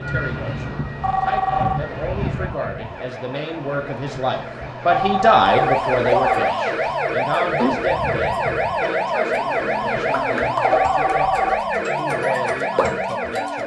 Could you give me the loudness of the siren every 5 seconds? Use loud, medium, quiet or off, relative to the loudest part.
quiet, loud, loud.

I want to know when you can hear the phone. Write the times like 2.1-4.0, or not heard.
1.0-1.8, 4.9-6.6, 10.7-11.7.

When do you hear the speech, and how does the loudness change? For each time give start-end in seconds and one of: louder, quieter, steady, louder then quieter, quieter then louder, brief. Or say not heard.
0.0-13.6 louder then quieter.